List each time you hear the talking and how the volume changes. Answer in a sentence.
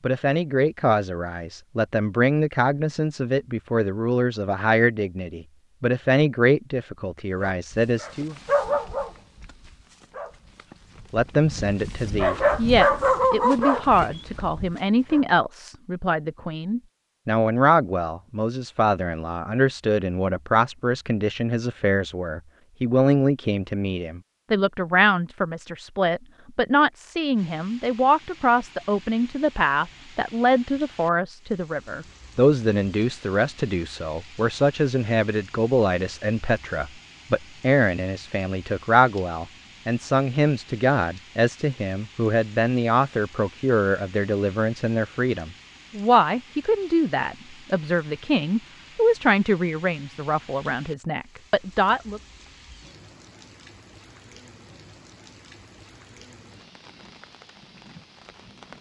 The talking can be heard from 0.0 to 8.3 s, at a steady volume; and from 11.1 to 52.2 s, at a steady volume.